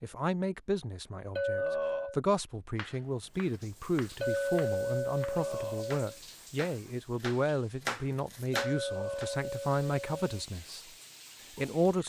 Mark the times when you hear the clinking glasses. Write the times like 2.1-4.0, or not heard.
1.4-2.2, 4.2-6.0, 8.5-10.4.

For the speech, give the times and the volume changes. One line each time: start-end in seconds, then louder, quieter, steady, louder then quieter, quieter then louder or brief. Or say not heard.
0.0-10.8 steady
11.6-12.0 brief.